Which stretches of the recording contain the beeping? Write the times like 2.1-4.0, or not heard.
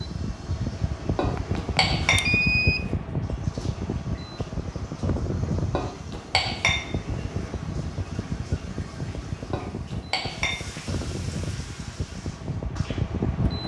1.4-2.8.